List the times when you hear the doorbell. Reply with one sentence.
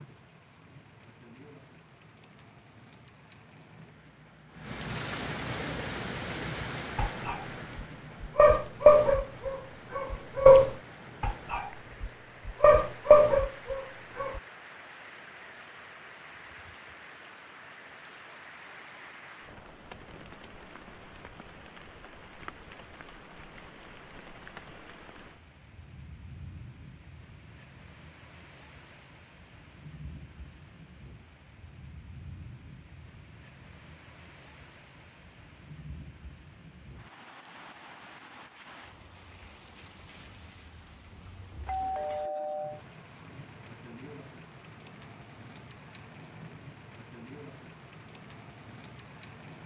The doorbell can be heard from 41.6 to 42.8 s.